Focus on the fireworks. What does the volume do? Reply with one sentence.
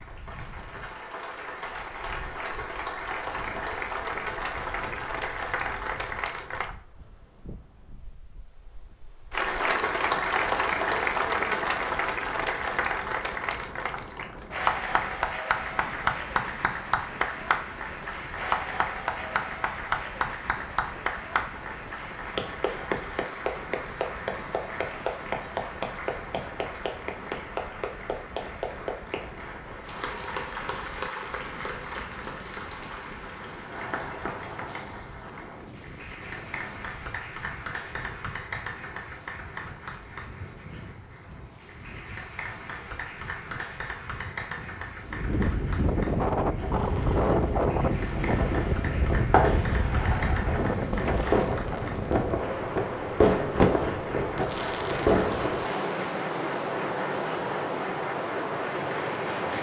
The loudness of the fireworks goes up.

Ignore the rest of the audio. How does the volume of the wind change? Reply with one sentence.
The loudness of the wind goes up.